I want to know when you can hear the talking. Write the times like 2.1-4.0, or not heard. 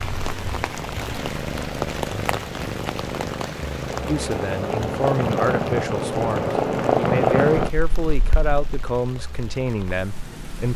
4.0-10.7.